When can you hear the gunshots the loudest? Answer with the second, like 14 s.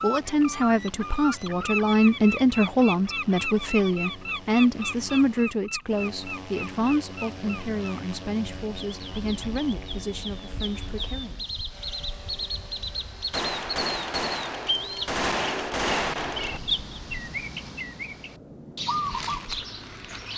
16 s.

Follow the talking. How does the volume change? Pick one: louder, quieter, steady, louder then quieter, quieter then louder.
quieter.